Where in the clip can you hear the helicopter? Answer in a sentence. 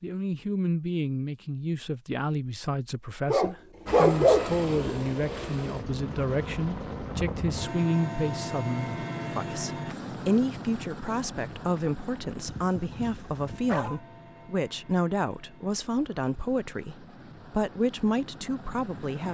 The helicopter can be heard from 3.9 to 19.2 s.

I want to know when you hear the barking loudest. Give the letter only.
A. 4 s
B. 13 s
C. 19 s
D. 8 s
A.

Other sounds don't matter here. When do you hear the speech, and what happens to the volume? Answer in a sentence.
You can hear the speech from 0.0 to 19.2 s, at a steady volume.